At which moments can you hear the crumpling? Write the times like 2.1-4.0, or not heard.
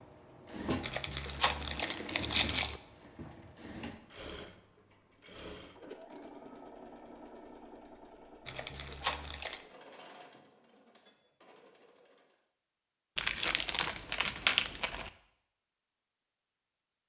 0.8-2.8, 8.4-9.7, 13.2-15.1.